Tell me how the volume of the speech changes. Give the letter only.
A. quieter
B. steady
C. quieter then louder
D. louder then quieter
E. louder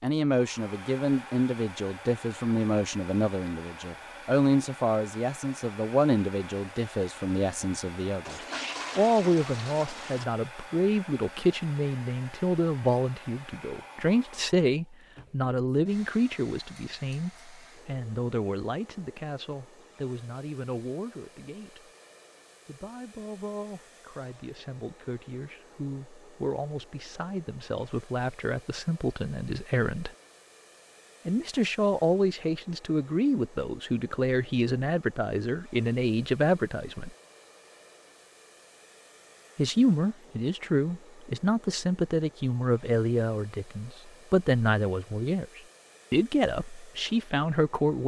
C.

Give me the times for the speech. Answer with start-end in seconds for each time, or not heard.
0.0-8.3, 8.9-21.9, 22.6-30.1, 31.2-37.1, 39.5-48.0.